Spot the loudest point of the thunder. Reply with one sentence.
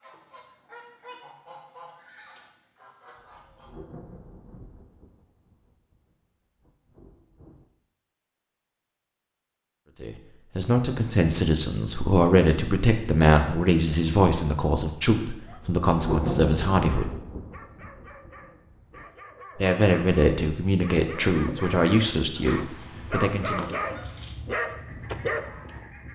The volume of the thunder peaks at 16 seconds.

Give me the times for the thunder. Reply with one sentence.
The thunder can be heard from 3.1 to 7.7 s and from 15.5 to 19.1 s.